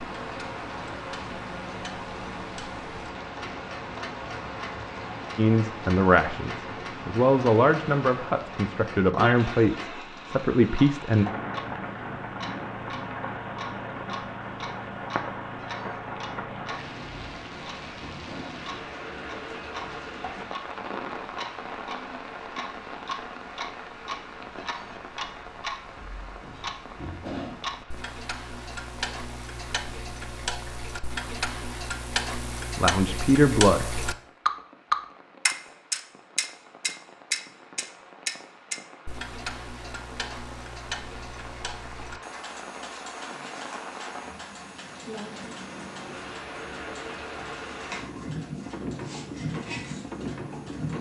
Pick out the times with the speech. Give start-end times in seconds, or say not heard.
5.3-11.2, 32.8-34.0.